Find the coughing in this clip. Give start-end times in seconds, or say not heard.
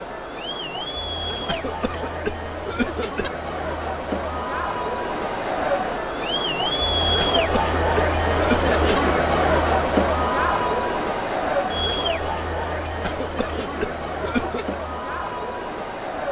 1.2-3.3, 7.0-9.0, 12.8-14.8.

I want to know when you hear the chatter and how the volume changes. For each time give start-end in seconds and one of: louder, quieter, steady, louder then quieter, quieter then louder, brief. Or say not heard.
0.0-16.2 louder then quieter.